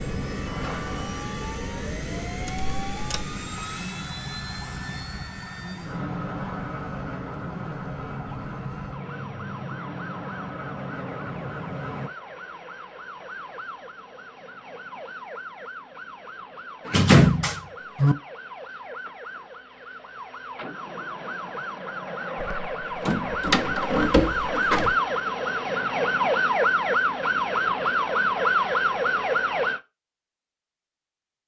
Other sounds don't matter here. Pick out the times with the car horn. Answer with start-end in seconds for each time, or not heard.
not heard.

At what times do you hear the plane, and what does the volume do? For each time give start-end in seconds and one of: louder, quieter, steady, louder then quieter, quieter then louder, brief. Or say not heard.
0.0-12.1 steady.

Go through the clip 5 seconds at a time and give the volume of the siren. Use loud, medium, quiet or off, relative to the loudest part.
quiet, quiet, quiet, quiet, medium, loud, off.